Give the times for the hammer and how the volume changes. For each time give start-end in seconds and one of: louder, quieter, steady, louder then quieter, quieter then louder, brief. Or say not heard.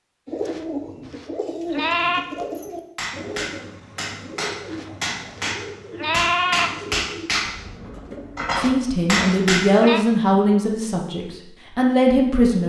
3.0-9.7 louder.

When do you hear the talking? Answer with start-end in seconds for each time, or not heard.
8.6-12.6.